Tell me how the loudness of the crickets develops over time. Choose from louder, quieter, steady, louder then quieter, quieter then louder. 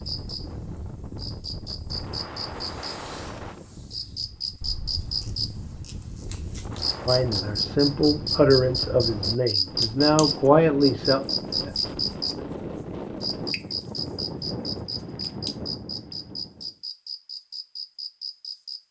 louder then quieter.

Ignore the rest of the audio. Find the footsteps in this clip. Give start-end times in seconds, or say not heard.
not heard.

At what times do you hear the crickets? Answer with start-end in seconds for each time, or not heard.
0.0-18.8.